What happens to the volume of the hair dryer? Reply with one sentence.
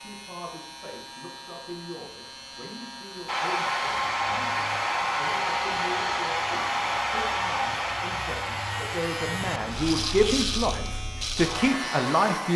The volume of the hair dryer goes down.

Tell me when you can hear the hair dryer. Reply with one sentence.
The hair dryer can be heard from 3.2 to 12.5 s.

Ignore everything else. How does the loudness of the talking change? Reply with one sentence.
The loudness of the talking goes up.